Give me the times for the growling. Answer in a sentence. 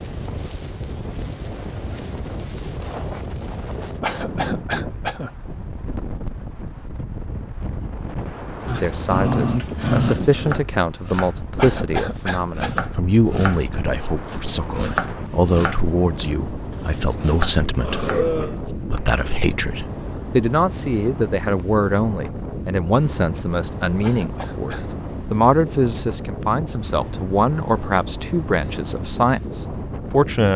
You can hear the growling from 8.7 to 10.2 s and from 17.8 to 18.6 s.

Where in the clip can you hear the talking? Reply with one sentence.
You can hear the talking from 8.8 to 30.5 s.